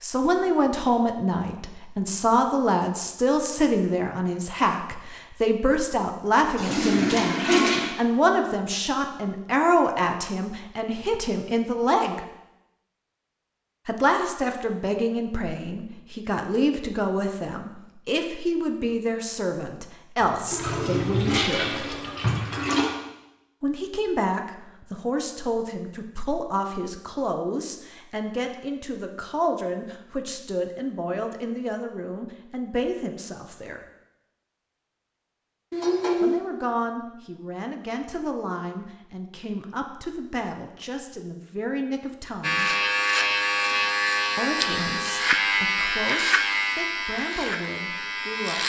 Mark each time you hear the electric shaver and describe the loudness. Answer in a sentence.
You can hear the electric shaver from 42.4 to 48.6 s, getting quieter.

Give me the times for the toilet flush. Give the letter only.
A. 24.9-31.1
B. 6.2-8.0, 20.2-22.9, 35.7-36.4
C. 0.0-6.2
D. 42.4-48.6
B.